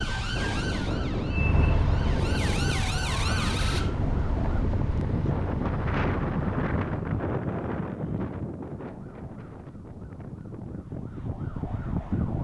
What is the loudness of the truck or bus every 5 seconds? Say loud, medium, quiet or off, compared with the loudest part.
loud, loud, off.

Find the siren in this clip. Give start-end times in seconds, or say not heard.
0.0-4.7, 8.8-12.4.